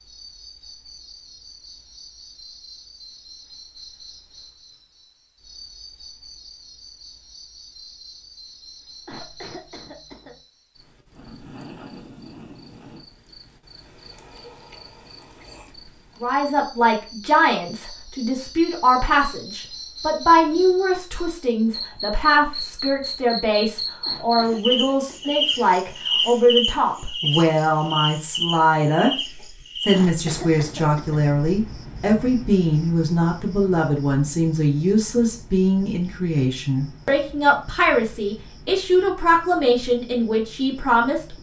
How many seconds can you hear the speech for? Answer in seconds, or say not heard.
24 s.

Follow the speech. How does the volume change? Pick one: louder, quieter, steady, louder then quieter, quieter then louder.
steady.